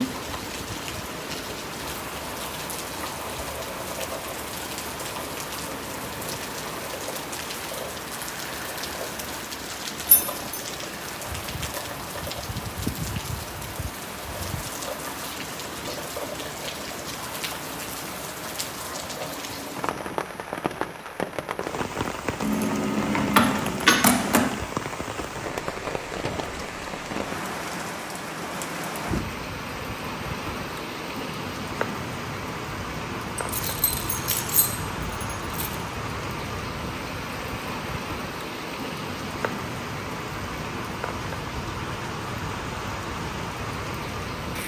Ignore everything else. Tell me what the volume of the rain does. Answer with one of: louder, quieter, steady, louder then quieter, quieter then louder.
steady.